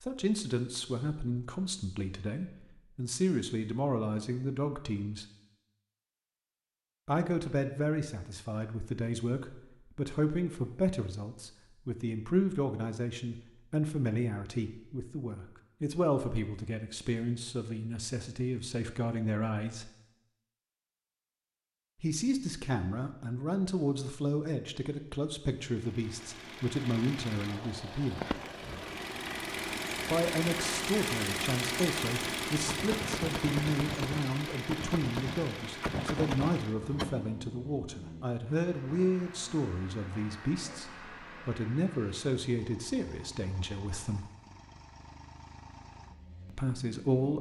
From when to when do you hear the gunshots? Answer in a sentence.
You can hear the gunshots from 32.6 to 37.1 s.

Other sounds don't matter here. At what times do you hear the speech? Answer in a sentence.
You can hear the speech from 0.0 to 5.2 s, from 7.0 to 19.9 s, from 22.0 to 28.4 s, from 30.1 to 44.2 s and from 46.5 to 47.3 s.